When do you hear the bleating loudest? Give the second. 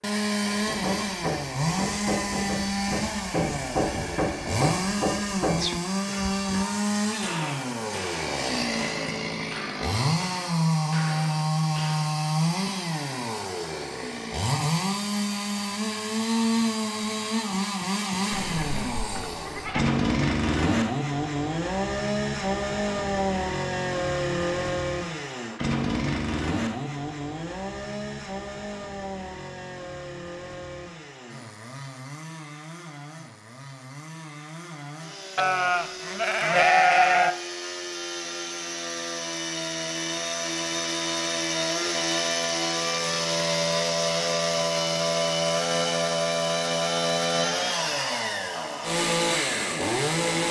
37 s.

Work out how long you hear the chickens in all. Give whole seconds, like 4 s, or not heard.
not heard.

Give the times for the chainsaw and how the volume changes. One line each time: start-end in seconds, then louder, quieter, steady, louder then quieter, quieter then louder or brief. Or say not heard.
0.0-50.4 quieter then louder.